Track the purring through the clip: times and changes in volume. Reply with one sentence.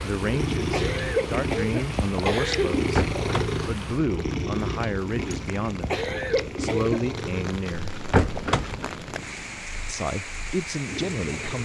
You can hear the purring from 0.0 to 11.6 s, getting quieter.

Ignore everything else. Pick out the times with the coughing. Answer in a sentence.
The coughing can be heard from 0.7 to 2.7 s and from 5.9 to 7.0 s.